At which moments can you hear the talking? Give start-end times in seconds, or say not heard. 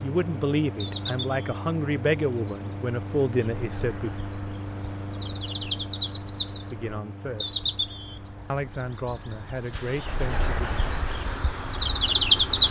0.0-4.1, 6.7-7.5, 8.5-10.7.